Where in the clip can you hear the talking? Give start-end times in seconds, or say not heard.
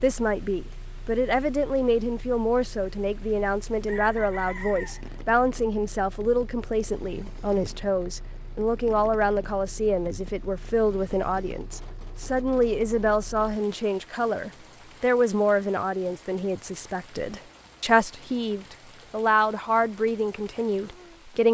0.0-21.4.